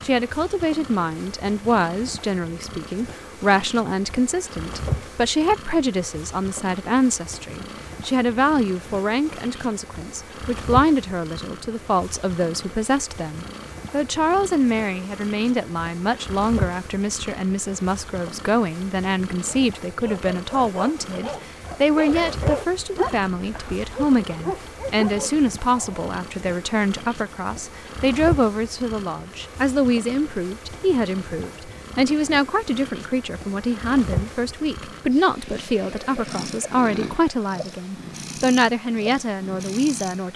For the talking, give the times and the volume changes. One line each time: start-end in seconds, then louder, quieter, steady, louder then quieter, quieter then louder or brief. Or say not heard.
0.0-40.3 steady.